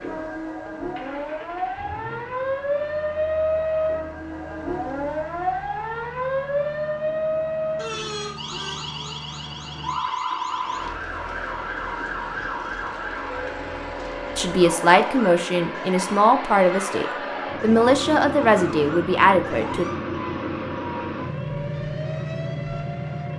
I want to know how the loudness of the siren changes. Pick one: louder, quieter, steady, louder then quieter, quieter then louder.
quieter.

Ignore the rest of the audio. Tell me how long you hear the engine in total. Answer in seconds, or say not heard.
23 s.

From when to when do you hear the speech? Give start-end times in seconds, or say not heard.
14.3-19.9.